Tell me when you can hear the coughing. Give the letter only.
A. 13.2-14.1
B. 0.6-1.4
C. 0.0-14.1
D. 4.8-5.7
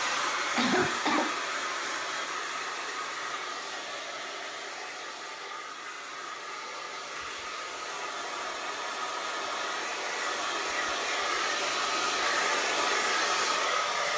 B.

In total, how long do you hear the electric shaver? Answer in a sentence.
The electric shaver can't be heard in this clip.